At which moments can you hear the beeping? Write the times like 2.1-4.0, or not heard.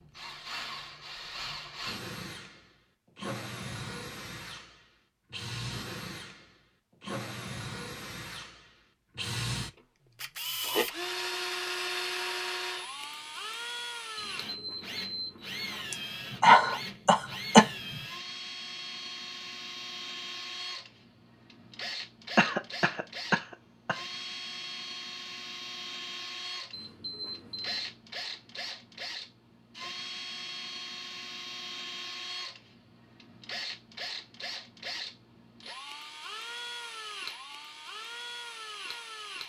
14.2-15.9, 26.7-27.9.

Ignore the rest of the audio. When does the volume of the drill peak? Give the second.
11 s.